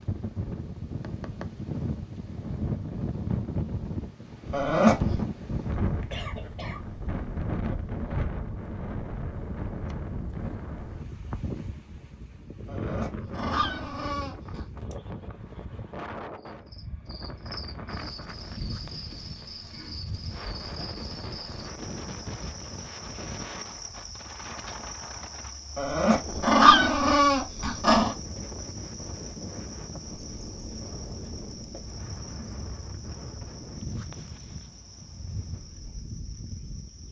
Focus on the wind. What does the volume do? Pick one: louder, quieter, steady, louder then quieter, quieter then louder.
quieter.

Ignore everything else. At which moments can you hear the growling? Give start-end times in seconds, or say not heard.
4.5-5.2, 12.7-14.7, 25.8-28.1.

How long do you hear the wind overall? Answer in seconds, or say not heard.
37 s.